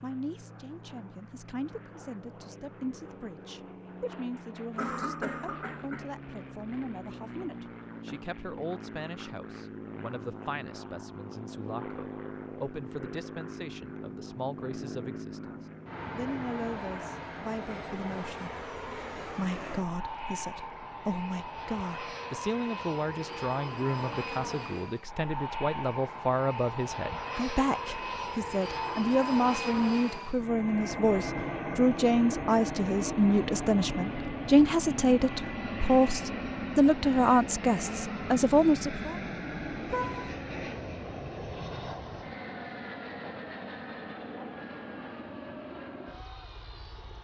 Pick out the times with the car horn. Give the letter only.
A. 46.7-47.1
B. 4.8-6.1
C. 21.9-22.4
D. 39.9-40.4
D.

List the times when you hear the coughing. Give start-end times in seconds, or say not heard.
4.8-6.1.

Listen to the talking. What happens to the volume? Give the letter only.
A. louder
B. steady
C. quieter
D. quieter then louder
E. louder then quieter
A.